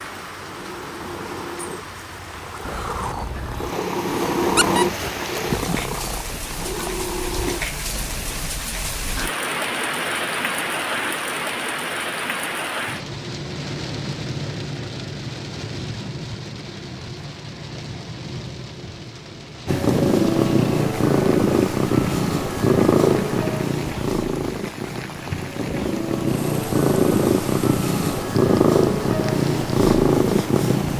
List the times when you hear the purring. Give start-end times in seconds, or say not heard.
0.0-8.3, 19.6-30.9.